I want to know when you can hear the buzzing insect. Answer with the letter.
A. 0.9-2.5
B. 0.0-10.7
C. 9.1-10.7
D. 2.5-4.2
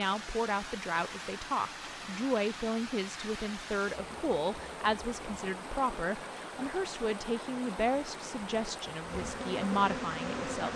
C.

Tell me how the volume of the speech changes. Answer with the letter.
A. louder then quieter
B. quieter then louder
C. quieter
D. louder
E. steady
E.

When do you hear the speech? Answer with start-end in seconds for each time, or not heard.
0.0-10.7.